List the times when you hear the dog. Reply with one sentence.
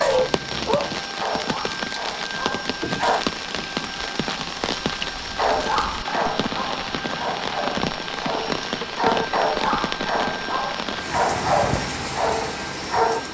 The dog can be heard from 0.0 to 3.2 s and from 5.3 to 13.2 s.